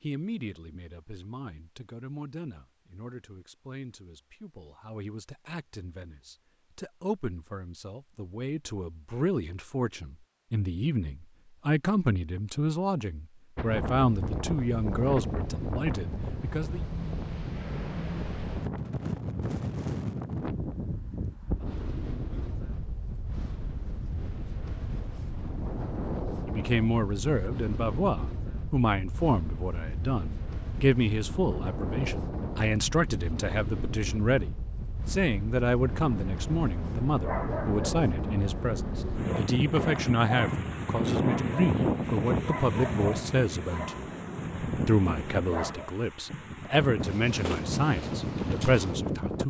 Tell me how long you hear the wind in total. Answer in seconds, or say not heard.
36 s.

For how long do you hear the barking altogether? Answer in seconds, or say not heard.
10 s.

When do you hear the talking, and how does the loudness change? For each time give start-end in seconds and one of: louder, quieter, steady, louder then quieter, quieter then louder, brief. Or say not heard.
0.0-16.9 louder
26.4-49.4 steady.